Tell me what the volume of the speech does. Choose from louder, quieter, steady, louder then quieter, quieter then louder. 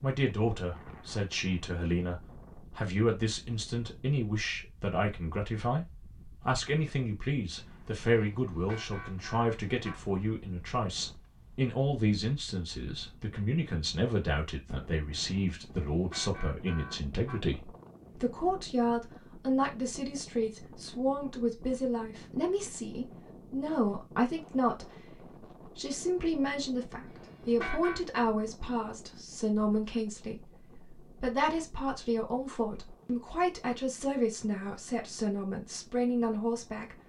steady.